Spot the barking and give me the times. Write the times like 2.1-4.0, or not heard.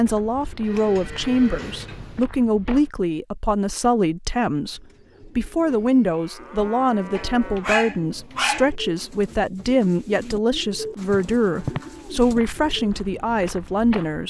7.2-8.7.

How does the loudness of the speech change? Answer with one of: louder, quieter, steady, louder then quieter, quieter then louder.
steady.